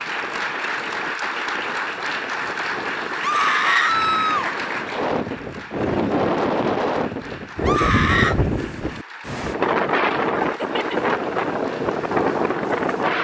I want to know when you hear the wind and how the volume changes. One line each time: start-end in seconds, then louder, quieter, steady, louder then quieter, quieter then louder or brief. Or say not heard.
0.0-13.1 louder.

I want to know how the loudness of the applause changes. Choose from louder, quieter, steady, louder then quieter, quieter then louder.
quieter.